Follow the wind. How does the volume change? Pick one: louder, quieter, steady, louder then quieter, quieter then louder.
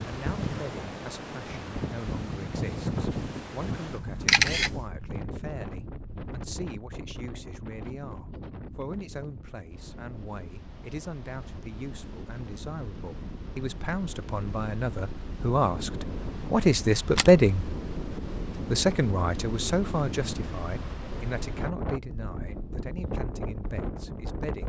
quieter then louder.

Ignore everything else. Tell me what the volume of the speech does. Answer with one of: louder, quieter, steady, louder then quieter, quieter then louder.
louder then quieter.